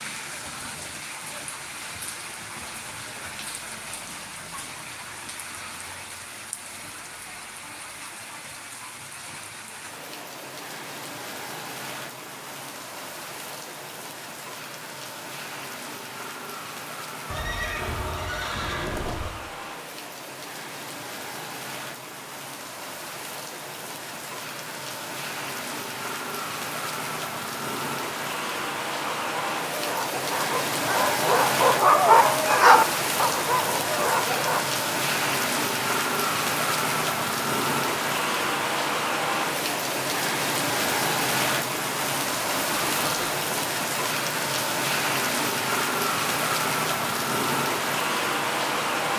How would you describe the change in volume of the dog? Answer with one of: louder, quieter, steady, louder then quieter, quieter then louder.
louder then quieter.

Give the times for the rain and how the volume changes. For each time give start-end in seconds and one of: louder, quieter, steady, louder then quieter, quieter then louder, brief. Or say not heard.
0.0-49.1 louder.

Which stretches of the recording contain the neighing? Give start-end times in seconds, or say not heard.
17.2-19.3, 42.8-43.4.